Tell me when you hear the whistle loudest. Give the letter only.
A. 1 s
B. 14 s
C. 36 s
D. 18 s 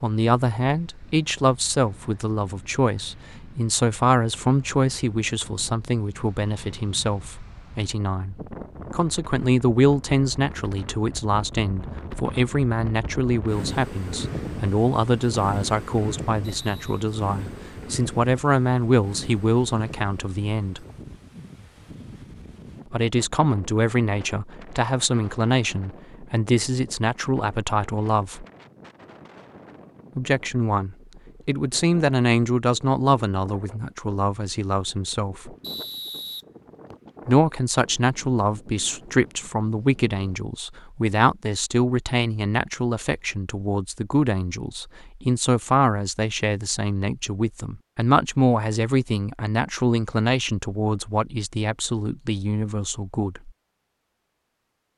C.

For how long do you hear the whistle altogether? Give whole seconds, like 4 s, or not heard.
2 s.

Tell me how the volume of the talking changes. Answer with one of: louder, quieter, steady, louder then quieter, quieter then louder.
steady.